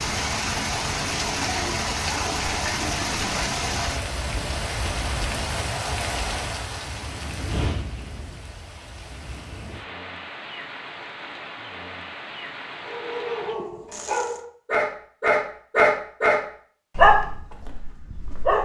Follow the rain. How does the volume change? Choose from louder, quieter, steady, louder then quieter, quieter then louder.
quieter.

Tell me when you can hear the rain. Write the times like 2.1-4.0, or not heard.
0.0-14.4.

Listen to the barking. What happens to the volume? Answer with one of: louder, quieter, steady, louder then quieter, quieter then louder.
louder then quieter.